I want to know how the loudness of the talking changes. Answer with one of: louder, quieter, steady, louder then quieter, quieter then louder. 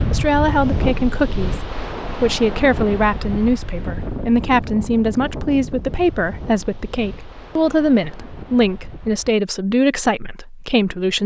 steady.